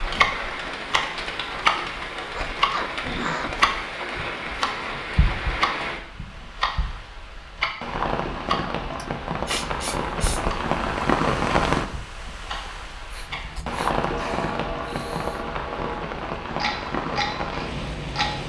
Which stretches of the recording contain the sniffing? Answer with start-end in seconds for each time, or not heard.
2.4-3.5, 8.9-10.4, 13.1-15.4.